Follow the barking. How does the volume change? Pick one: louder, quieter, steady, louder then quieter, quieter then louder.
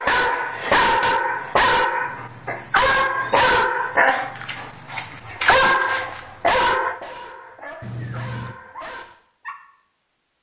quieter.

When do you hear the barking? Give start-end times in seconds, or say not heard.
0.0-9.6.